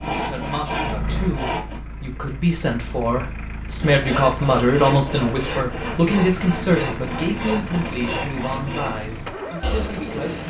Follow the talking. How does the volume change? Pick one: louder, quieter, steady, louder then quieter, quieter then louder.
louder then quieter.